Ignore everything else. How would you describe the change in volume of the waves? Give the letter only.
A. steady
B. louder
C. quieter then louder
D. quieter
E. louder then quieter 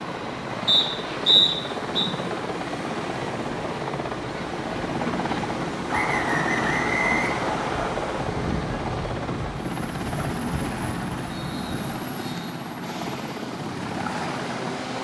E.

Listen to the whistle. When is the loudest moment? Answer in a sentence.
The volume of the whistle peaks at 1 second.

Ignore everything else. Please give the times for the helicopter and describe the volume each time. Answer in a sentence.
You can hear the helicopter from 0.0 to 14.9 s, at a steady volume.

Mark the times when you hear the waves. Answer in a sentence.
You can hear the waves from 0.0 to 14.9 s.